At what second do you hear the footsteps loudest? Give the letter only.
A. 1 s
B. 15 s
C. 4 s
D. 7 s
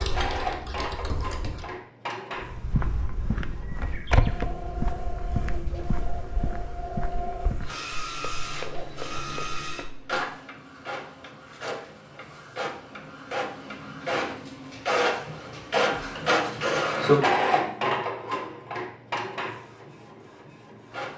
C.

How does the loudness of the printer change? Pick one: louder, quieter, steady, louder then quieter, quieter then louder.
louder.